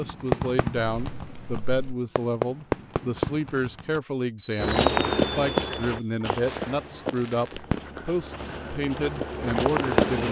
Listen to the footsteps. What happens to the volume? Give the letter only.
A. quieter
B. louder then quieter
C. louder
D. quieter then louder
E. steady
D.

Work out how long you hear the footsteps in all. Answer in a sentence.
You can hear the footsteps for 6 seconds altogether.